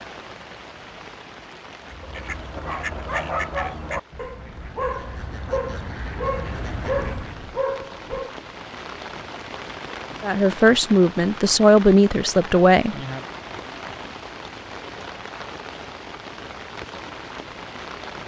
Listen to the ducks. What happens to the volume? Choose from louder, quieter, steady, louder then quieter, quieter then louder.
quieter then louder.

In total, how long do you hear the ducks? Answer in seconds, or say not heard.
6 s.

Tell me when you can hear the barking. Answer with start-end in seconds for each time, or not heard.
2.6-8.3.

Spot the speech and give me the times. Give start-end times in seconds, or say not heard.
10.2-12.9.